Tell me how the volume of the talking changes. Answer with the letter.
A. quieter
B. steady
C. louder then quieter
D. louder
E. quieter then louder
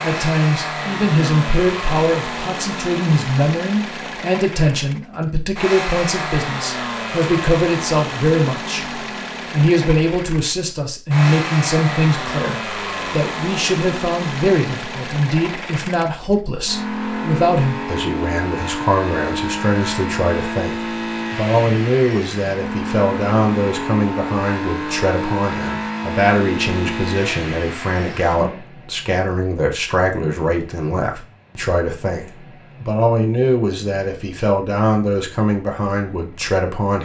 B.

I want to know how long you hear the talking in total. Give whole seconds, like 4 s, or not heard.
37 s.